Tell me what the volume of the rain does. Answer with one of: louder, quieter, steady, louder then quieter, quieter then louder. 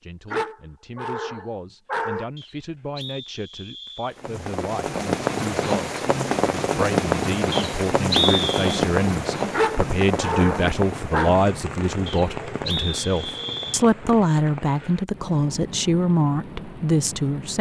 quieter.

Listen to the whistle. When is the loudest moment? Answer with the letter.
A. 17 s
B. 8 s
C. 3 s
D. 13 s
B.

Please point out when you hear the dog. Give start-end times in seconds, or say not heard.
0.3-2.2, 9.5-11.3.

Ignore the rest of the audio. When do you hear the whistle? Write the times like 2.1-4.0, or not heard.
2.4-4.2, 7.5-8.8, 12.1-13.8.